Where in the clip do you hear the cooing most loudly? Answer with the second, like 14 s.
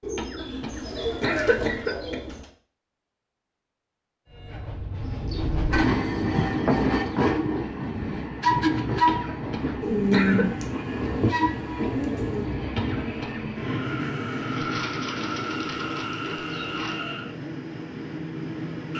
10 s.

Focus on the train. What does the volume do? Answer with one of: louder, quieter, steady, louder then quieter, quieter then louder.
quieter.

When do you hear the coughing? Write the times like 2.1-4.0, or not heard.
0.1-2.1, 9.1-10.4, 12.8-13.4.